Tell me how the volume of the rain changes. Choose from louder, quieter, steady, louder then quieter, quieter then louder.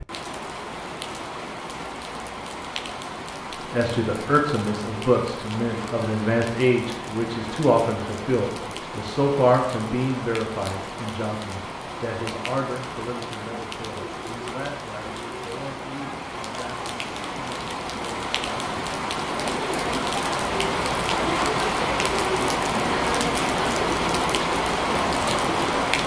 louder.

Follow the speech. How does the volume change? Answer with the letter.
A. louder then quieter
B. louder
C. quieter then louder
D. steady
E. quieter
E.